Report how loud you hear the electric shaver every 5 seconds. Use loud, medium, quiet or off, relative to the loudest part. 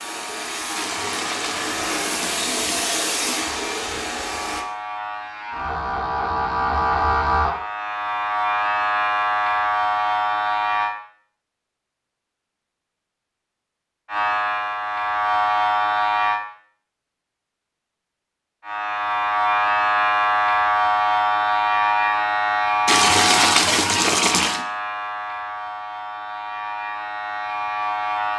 quiet, loud, loud, loud, loud, medium.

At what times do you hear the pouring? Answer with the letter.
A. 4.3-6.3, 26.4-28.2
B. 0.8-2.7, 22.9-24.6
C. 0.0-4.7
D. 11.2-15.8
B.